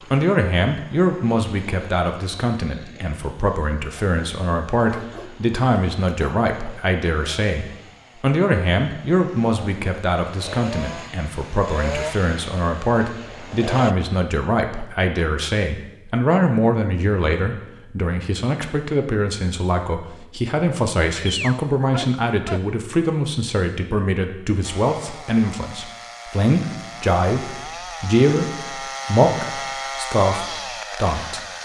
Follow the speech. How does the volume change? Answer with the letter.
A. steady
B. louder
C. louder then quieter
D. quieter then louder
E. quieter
A.